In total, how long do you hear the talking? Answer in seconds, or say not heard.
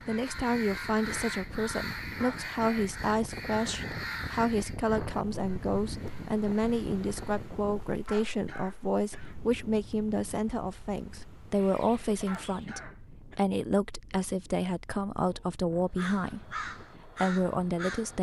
18 s.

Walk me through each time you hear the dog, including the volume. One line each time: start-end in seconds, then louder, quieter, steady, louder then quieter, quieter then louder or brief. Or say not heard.
not heard.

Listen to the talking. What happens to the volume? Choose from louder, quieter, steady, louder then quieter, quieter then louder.
steady.